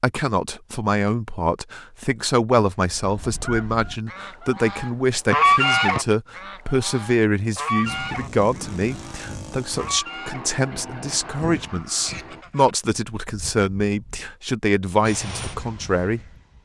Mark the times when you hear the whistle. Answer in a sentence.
The whistle can be heard from 5.3 to 6.0 s.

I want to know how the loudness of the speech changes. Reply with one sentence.
The volume of the speech stays about the same.